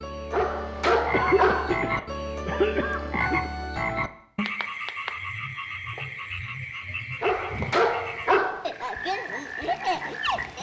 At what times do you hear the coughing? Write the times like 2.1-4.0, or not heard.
1.1-3.5.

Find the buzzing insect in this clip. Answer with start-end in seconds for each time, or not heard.
not heard.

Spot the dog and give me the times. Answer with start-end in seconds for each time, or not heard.
0.3-1.8, 7.2-8.7.